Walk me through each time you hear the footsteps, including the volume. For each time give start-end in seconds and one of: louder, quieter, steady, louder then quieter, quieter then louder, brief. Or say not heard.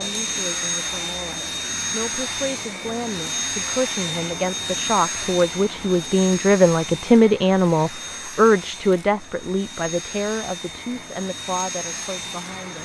not heard.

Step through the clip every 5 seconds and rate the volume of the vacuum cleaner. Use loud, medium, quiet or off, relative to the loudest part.
loud, medium, medium.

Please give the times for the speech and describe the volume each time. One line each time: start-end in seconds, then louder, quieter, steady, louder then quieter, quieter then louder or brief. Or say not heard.
0.0-12.7 louder then quieter.